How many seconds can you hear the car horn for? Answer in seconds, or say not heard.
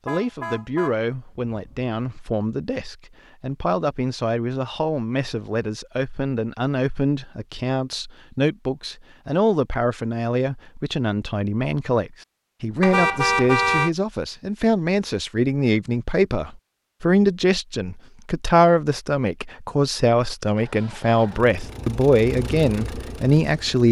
3 s.